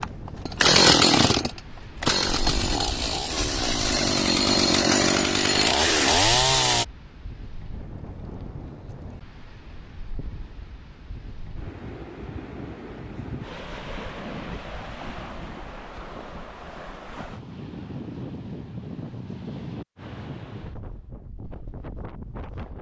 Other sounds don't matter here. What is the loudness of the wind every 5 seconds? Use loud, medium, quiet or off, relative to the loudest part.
loud, medium, loud, loud, loud.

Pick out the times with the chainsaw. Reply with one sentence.
You can hear the chainsaw from 0.0 to 6.8 s.